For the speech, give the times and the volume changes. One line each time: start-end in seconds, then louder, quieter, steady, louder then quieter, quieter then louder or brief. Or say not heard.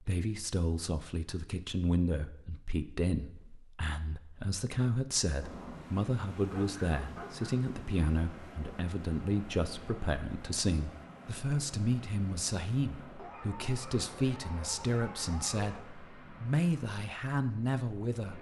0.0-18.3 steady.